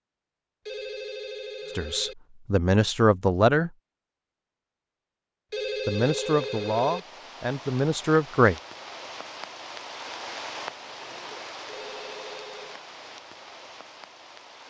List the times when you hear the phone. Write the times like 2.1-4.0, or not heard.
0.7-2.1, 5.5-7.0, 11.7-12.8.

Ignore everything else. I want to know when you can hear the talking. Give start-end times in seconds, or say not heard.
1.8-3.7, 5.8-8.6.